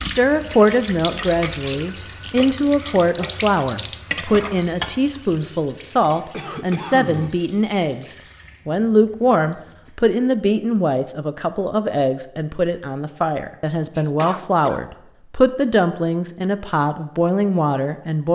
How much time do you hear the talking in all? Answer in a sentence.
The talking can be heard for 18 seconds in total.